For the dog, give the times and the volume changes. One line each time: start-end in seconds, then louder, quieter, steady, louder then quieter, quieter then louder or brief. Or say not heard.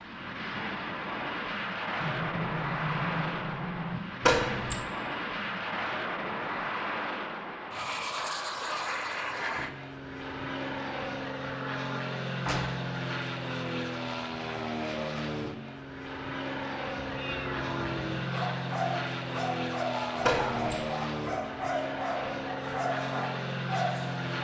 18.1-24.4 steady.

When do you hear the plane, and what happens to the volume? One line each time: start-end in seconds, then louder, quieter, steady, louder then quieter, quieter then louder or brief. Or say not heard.
0.0-24.4 steady.